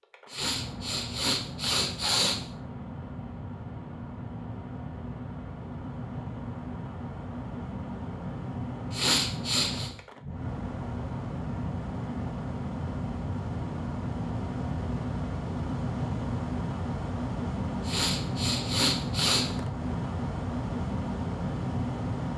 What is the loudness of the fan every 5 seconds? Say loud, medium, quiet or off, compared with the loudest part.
medium, medium, loud, loud, loud.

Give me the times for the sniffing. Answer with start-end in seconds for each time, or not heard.
0.3-2.4, 8.9-9.9, 17.9-19.4.